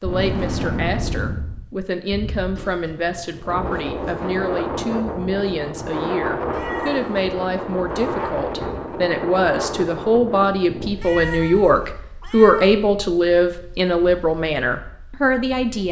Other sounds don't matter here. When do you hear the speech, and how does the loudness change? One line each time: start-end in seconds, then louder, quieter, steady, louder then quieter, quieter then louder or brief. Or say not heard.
0.0-15.8 louder.